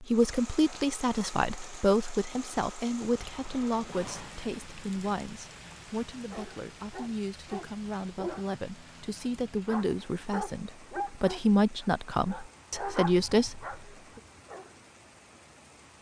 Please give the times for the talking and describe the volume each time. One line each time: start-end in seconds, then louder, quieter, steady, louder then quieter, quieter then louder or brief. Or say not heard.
0.0-13.8 quieter then louder.